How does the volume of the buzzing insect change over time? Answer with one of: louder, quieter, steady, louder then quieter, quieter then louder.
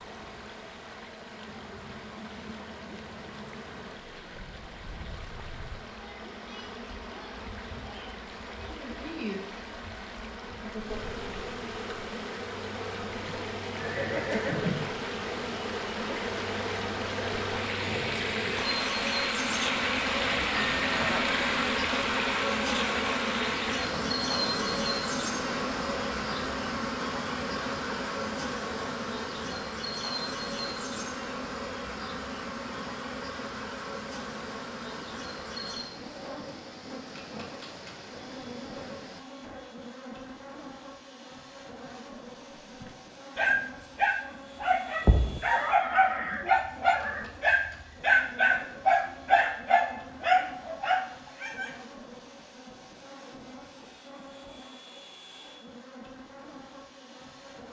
louder then quieter.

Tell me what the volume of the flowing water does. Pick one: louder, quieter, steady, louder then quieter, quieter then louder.
louder then quieter.